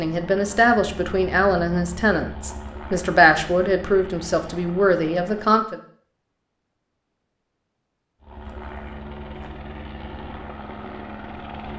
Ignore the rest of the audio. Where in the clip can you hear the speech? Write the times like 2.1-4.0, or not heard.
0.0-5.8.